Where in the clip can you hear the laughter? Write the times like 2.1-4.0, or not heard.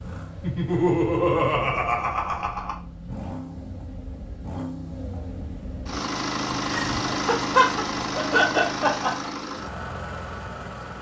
0.4-2.8, 6.7-9.3.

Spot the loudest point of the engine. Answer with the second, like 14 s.
7 s.